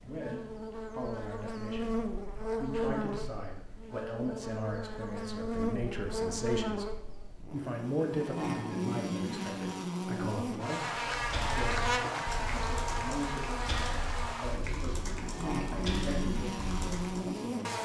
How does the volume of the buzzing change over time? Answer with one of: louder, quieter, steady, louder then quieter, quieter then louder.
steady.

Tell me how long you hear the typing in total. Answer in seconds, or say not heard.
6 s.